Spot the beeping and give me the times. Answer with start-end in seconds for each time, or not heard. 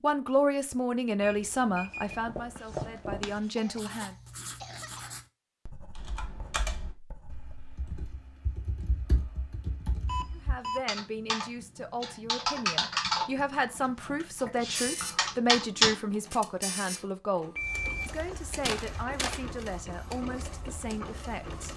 1.2-2.2, 10.1-10.8, 17.6-19.4.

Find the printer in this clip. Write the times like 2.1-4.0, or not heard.
14.7-21.7.